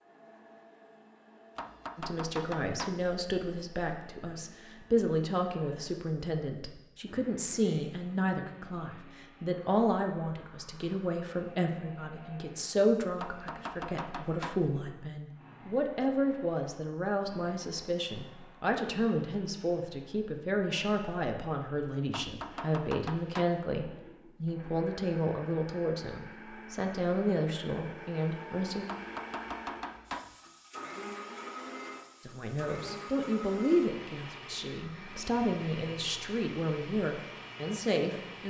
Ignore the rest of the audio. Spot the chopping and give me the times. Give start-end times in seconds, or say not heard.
1.6-3.0, 13.2-14.7, 22.1-23.6, 28.9-30.4.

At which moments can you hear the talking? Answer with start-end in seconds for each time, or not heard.
1.9-28.9, 32.2-38.4.